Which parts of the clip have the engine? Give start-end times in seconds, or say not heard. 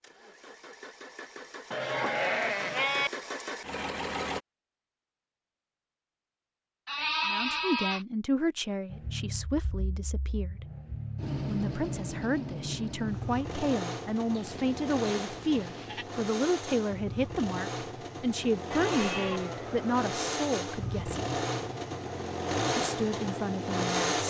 0.0-4.4, 8.8-24.2.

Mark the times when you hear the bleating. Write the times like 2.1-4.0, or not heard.
1.7-3.1, 6.8-8.1, 14.3-16.1, 18.7-20.1.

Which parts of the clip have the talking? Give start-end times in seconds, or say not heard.
7.2-10.7, 11.4-21.2, 22.8-24.2.